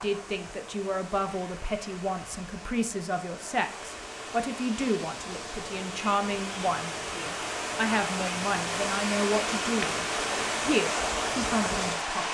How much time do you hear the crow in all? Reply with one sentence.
The crow can't be heard in this clip.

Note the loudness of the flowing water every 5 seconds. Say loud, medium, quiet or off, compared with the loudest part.
quiet, loud, loud.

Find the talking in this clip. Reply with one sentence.
You can hear the talking from 0.0 to 12.2 s.